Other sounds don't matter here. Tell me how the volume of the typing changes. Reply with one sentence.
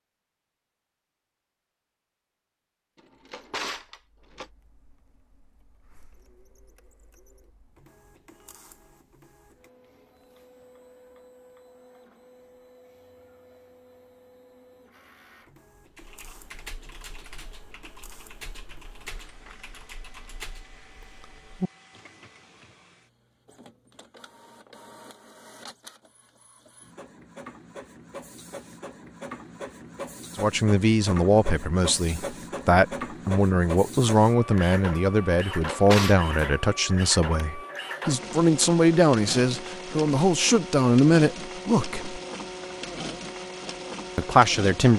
The loudness of the typing goes up.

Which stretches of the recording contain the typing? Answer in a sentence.
The typing can be heard from 15.8 to 22.8 s.